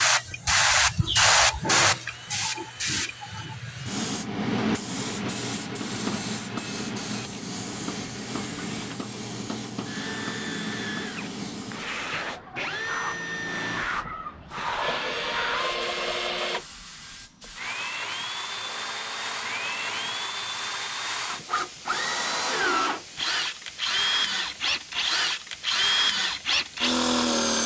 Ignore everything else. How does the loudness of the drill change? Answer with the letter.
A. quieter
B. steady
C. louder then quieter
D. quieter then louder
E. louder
E.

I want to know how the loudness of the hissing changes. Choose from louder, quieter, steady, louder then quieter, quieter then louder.
quieter.